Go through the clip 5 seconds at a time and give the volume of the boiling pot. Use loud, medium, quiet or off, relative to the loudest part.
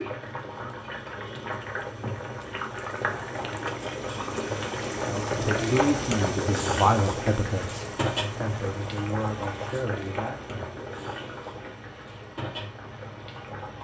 loud, loud, medium.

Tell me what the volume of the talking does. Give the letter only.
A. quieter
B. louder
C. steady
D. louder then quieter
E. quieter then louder
A.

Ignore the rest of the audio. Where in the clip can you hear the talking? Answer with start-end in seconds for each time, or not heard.
5.0-10.5.